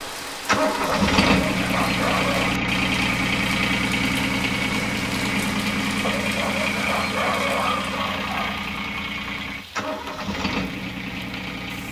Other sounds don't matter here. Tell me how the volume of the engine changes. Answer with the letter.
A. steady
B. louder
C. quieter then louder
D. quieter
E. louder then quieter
D.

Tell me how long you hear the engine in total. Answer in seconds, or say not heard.
11 s.